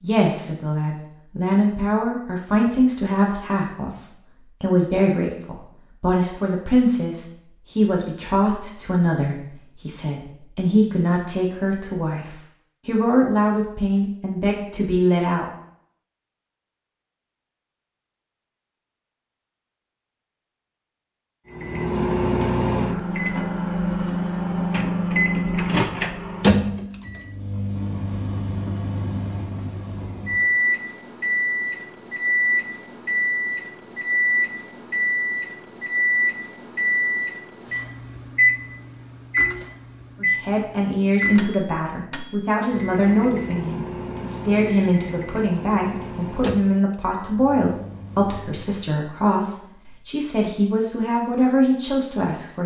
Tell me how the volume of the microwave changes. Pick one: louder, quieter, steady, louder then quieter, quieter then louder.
quieter.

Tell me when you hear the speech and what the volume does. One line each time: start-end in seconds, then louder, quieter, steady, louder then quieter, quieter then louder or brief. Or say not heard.
0.0-15.4 steady
40.2-52.6 steady.